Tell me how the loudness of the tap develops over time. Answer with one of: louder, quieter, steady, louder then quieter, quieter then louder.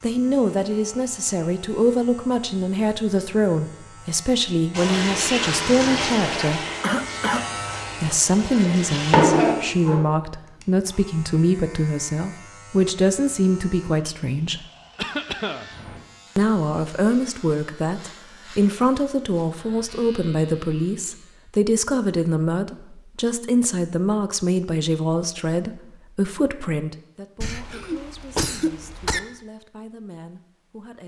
quieter then louder.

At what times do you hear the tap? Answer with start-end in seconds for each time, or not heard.
4.7-10.0.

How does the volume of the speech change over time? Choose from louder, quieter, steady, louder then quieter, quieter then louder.
quieter.